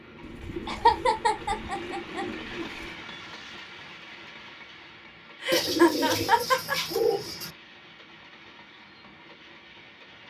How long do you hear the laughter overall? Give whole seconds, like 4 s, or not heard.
3 s.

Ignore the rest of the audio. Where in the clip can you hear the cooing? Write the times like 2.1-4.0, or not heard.
0.2-3.0, 5.5-7.5.